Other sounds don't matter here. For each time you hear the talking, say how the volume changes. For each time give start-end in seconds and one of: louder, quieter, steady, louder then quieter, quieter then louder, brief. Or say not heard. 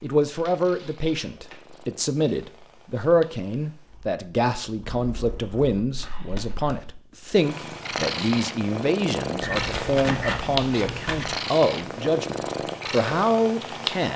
0.0-14.1 steady.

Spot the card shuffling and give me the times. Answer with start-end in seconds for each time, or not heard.
0.3-1.9, 6.0-6.9, 9.4-11.3.